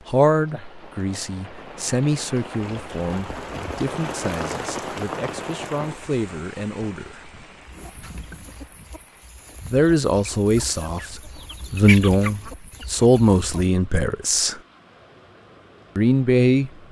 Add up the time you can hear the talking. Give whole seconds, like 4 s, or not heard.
13 s.